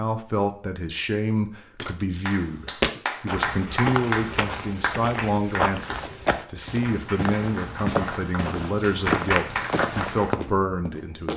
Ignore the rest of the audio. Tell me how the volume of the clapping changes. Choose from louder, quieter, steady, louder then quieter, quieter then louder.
quieter then louder.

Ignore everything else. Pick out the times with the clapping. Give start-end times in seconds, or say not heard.
2.2-10.3.